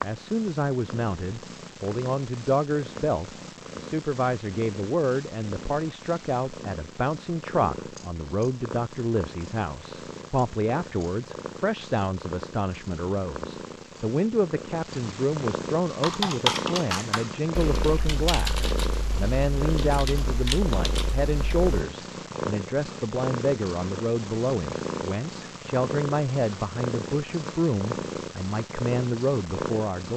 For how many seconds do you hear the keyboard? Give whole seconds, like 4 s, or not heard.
6 s.